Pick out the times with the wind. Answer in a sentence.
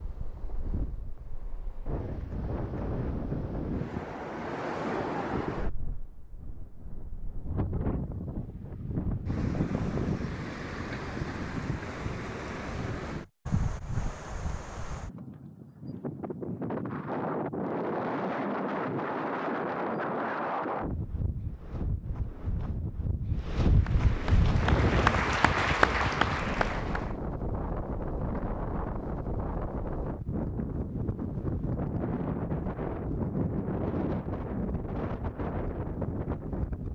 You can hear the wind from 0.0 to 36.8 s.